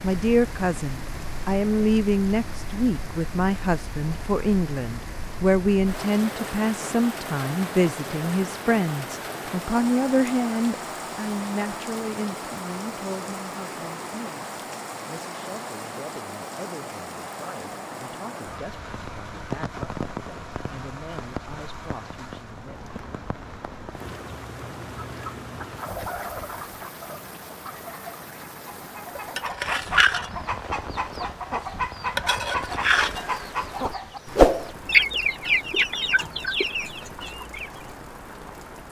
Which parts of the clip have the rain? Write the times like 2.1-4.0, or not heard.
0.0-38.8.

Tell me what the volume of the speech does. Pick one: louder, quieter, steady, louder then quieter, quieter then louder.
quieter.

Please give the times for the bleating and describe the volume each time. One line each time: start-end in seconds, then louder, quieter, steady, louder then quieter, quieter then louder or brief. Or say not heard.
not heard.